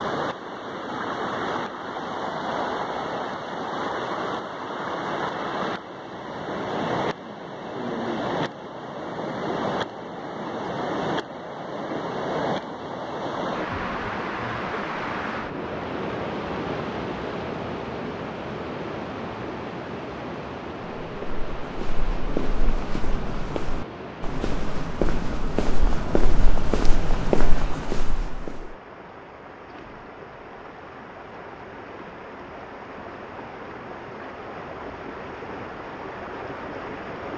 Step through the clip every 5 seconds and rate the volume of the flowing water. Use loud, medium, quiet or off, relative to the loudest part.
loud, loud, loud, loud, medium, quiet, medium, medium.